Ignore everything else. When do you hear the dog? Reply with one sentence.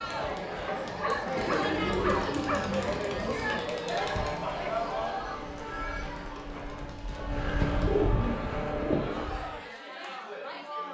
The dog can be heard from 0.7 to 2.7 s.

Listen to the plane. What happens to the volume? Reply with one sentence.
The loudness of the plane goes up.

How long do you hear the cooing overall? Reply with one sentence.
The cooing can be heard for 4 seconds in total.